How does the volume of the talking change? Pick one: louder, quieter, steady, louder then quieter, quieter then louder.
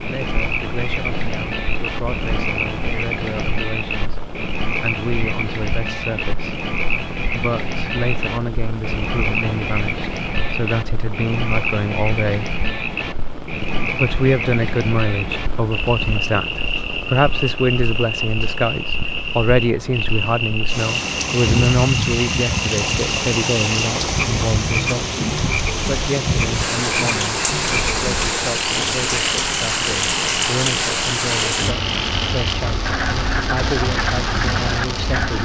louder then quieter.